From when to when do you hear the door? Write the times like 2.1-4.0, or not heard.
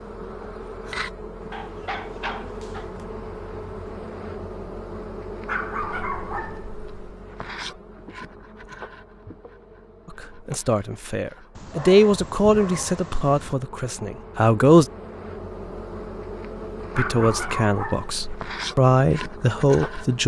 not heard.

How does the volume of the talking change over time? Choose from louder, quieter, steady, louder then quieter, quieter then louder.
steady.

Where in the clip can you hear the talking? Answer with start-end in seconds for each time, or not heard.
10.1-14.8, 16.9-20.2.